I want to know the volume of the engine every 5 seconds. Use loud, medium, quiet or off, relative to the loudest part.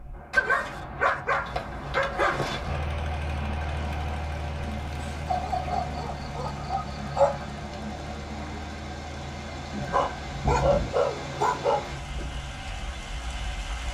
loud, loud, medium.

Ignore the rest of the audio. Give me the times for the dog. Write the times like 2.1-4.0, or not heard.
0.3-2.8, 5.2-7.5, 9.8-12.4.